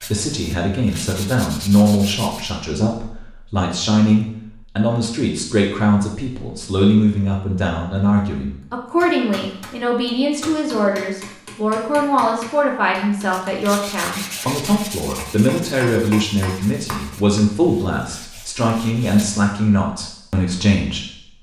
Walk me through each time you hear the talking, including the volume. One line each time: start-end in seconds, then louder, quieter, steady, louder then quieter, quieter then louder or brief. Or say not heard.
0.0-21.3 steady.